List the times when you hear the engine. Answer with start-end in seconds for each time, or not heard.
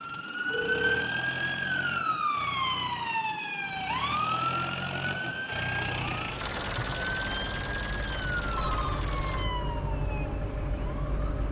0.0-9.4.